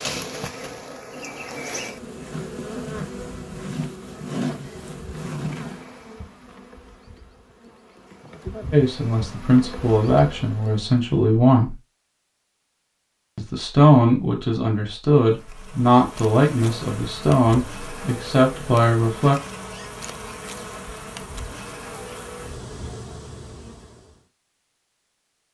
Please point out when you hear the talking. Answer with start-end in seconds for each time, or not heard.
8.7-11.8, 13.3-19.4.